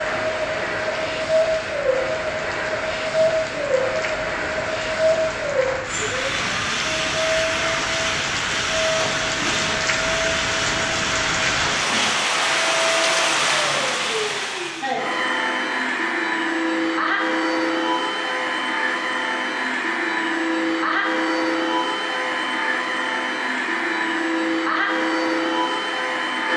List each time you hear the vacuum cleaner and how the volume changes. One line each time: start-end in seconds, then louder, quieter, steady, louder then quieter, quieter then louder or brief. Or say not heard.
0.0-26.5 steady.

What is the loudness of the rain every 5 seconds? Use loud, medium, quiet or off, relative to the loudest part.
medium, loud, loud, off, off, off.